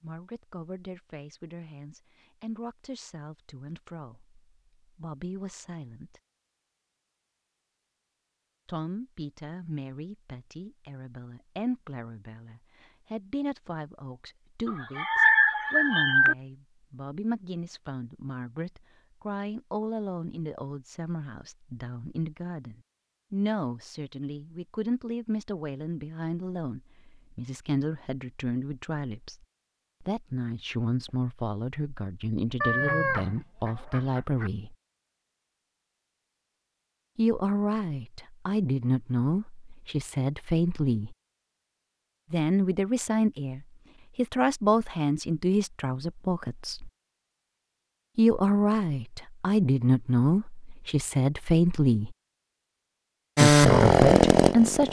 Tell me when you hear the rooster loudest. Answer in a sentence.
The volume of the rooster peaks at 15 seconds.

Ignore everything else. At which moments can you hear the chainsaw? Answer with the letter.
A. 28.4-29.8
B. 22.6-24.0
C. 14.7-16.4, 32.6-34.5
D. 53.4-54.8
D.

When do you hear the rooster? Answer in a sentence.
The rooster can be heard from 14.7 to 16.4 s and from 32.6 to 34.5 s.